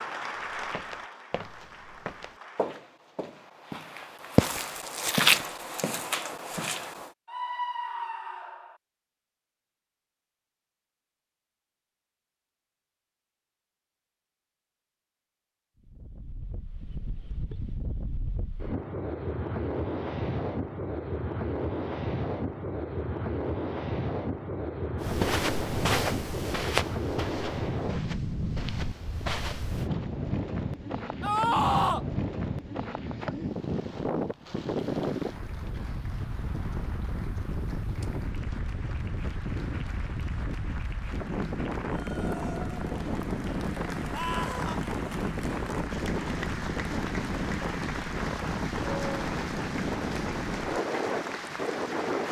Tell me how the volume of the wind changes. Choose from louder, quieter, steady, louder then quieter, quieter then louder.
steady.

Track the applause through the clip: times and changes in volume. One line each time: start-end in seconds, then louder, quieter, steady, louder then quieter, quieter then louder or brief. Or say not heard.
0.0-2.8 brief
35.0-52.2 louder.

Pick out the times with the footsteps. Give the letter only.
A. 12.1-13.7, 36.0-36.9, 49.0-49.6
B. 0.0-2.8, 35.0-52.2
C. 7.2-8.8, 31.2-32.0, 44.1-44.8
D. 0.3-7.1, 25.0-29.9
D.